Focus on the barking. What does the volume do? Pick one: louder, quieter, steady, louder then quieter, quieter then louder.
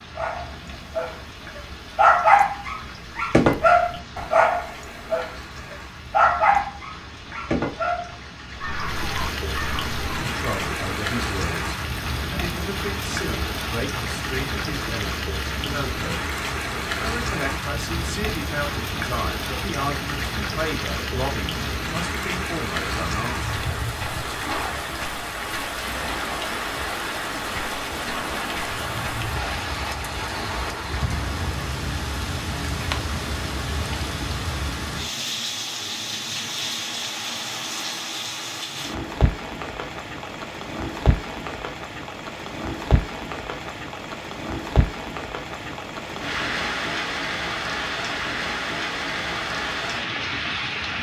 quieter.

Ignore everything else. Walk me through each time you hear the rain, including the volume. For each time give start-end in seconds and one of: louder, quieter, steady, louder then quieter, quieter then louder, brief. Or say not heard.
0.0-50.9 louder.